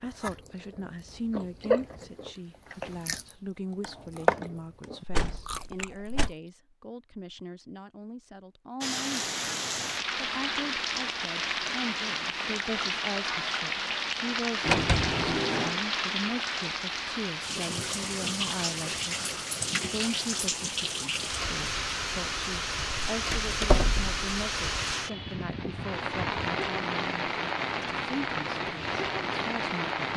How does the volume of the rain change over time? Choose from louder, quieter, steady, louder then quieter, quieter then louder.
steady.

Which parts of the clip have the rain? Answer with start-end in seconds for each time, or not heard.
8.8-30.1.